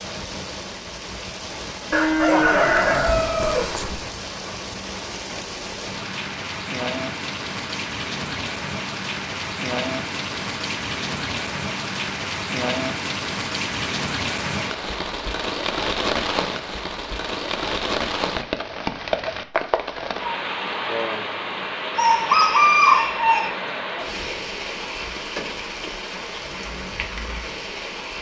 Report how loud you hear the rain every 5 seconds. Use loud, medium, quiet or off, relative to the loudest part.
medium, loud, loud, loud, loud, medium.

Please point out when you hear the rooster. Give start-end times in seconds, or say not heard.
1.9-4.0, 21.9-23.5.